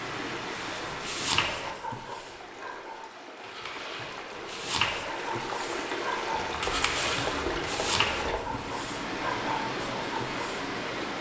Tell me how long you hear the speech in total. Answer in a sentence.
You can't hear the speech here.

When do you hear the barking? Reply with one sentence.
You can hear the barking from 0.5 to 10.7 s.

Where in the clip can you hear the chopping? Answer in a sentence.
You can hear the chopping from 6.3 to 8.8 s.